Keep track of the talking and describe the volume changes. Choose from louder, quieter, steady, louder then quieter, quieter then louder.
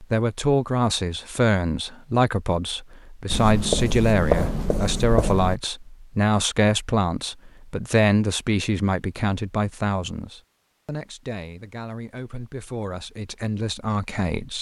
quieter.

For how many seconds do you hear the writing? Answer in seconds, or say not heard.
2 s.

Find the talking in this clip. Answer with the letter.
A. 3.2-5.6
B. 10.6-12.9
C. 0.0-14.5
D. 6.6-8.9
C.